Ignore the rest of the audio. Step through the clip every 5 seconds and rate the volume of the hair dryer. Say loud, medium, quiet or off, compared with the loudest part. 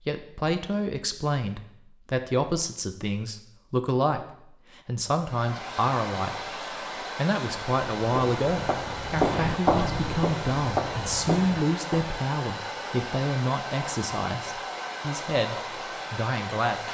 off, loud, loud, loud.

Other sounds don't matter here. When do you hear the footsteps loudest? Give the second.
10 s.